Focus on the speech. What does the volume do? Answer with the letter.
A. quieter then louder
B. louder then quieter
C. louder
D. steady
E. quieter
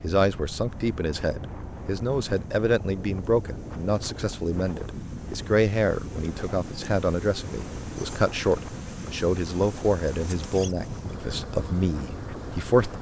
D.